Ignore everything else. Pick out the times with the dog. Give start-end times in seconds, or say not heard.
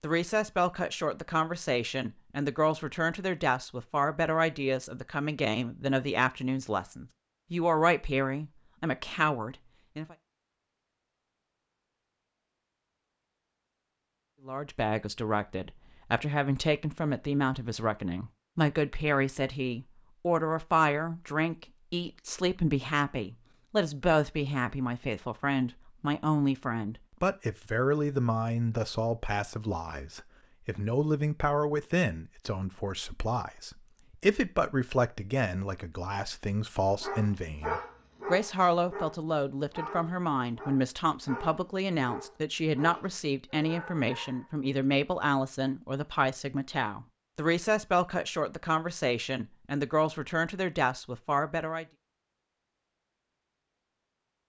37.0-44.5.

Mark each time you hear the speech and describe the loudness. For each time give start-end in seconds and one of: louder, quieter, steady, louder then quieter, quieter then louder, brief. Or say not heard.
0.0-10.2 steady
14.4-51.9 steady.